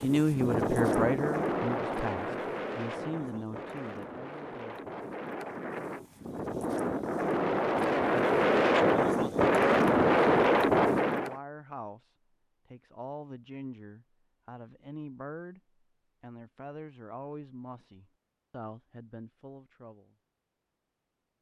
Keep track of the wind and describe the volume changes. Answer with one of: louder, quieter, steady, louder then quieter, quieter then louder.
quieter then louder.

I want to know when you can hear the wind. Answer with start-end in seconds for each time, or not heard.
0.0-11.3.